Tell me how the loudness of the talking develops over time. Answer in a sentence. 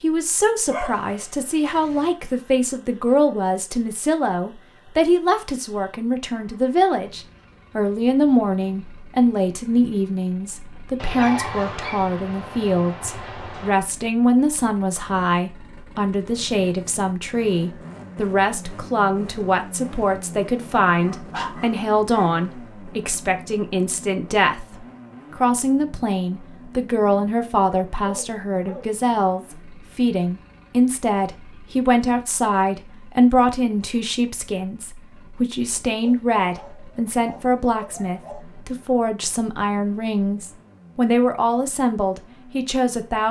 The loudness of the talking stays about the same.